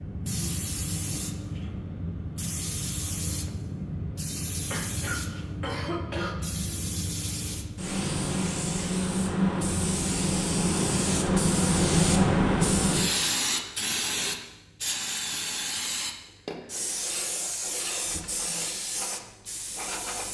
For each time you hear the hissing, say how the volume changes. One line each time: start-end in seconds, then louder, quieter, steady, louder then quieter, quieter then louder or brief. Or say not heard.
0.0-20.2 louder then quieter.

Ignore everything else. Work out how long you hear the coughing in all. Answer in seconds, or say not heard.
2 s.